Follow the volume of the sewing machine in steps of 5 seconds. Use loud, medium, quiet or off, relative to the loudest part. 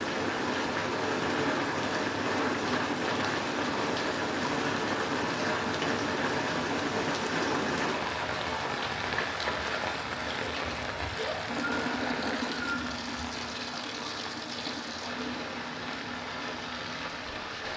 off, off, loud, medium.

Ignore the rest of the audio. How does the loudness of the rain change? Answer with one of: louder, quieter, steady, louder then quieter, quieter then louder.
quieter.